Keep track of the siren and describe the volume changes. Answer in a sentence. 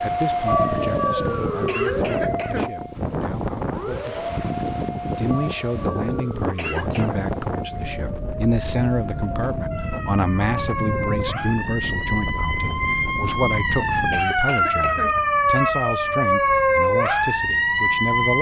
The volume of the siren goes down, then up.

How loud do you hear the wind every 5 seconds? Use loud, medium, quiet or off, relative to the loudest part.
loud, loud, loud, quiet.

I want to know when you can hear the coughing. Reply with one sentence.
You can hear the coughing from 1.6 to 2.7 s, from 6.5 to 7.2 s and from 14.1 to 15.1 s.